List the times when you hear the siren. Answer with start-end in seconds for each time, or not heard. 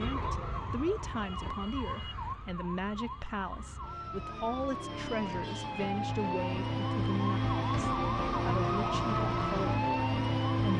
0.0-10.7.